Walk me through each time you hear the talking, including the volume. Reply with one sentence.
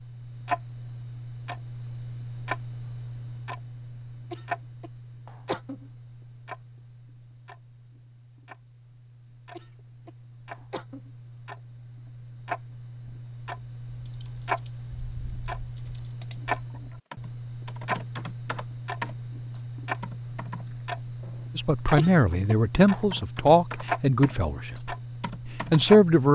The talking can be heard from 21.6 to 26.3 s, getting quieter then louder.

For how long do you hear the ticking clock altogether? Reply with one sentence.
The ticking clock can be heard for 26 seconds in total.